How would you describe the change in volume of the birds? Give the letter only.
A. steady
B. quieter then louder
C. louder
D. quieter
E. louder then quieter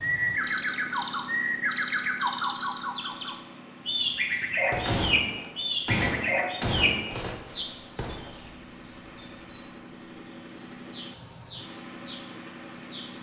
B.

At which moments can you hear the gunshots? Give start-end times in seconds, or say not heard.
4.7-8.3.